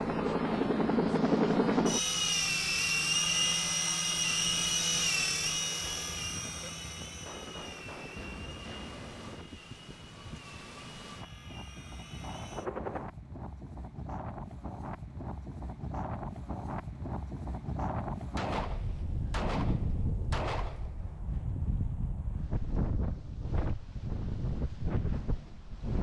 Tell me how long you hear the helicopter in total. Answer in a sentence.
The helicopter can be heard for 13 seconds in total.